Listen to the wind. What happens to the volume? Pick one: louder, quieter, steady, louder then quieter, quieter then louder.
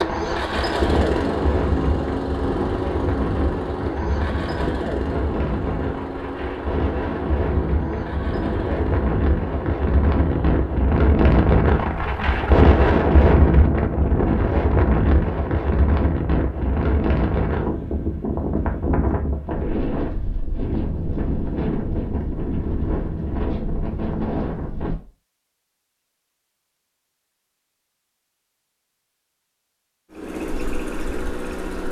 louder then quieter.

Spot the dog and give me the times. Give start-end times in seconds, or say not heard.
not heard.